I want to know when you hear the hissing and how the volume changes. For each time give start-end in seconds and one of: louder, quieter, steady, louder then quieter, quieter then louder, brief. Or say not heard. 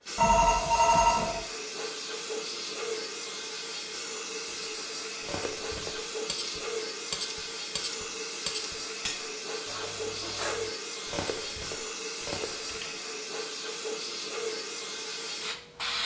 0.0-16.0 steady.